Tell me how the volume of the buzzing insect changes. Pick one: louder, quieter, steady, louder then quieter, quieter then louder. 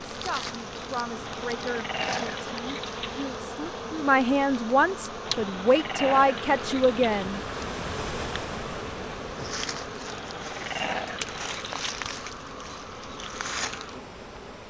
steady.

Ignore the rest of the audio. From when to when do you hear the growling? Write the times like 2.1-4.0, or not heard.
1.2-3.2, 5.2-7.1, 10.1-11.8.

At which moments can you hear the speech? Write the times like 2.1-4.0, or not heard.
0.1-7.4.